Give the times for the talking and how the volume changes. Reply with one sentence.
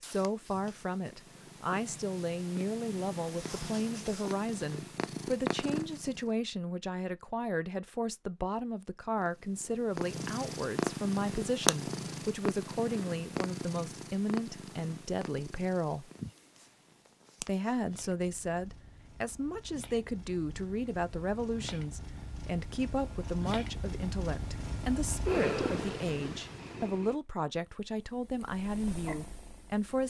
You can hear the talking from 0.0 to 16.1 s, at a steady volume; and from 17.4 to 30.0 s, at a steady volume.